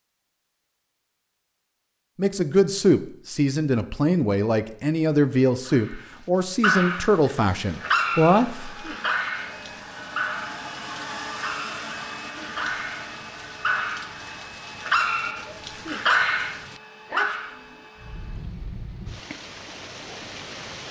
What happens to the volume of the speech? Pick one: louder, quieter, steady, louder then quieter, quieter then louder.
steady.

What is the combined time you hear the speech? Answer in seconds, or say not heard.
7 s.